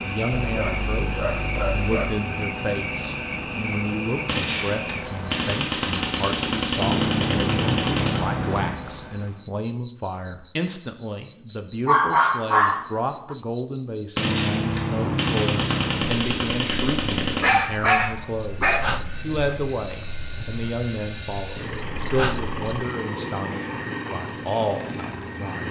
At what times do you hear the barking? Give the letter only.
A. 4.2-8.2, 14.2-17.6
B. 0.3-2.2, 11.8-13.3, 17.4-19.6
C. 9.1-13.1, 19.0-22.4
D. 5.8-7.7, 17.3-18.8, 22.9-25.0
B.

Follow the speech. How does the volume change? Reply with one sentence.
The volume of the speech stays about the same.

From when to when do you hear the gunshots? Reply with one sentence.
The gunshots can be heard from 4.2 to 8.2 s and from 14.2 to 17.6 s.